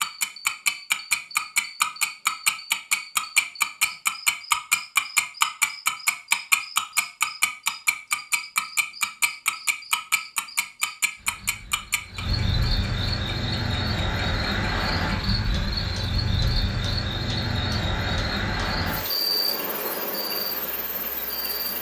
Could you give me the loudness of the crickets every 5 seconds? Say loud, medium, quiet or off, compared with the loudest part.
quiet, quiet, loud, loud, medium.